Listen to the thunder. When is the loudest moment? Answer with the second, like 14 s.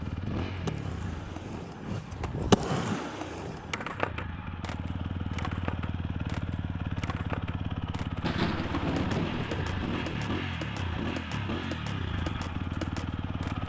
9 s.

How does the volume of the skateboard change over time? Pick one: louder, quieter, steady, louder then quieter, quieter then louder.
quieter.